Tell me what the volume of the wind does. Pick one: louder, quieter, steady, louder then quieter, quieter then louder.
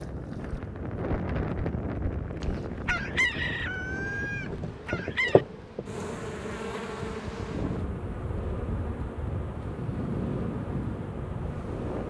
quieter then louder.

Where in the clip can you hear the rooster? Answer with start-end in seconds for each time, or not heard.
2.4-5.5.